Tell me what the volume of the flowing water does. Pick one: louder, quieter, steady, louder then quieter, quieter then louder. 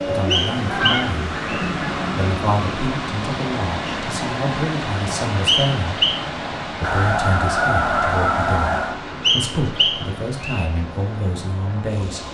quieter.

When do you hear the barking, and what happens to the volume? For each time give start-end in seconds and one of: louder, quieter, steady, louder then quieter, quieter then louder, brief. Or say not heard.
not heard.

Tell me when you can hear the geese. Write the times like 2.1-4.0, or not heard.
0.2-2.2, 6.8-9.0.